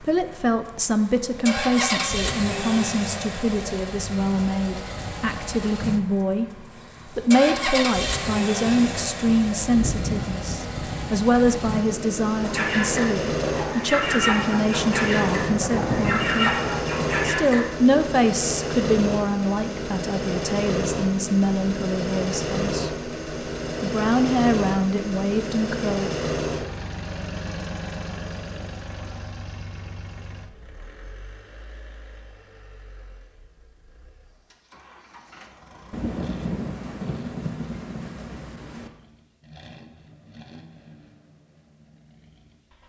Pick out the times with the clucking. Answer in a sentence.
You can hear the clucking from 12.4 to 17.6 s.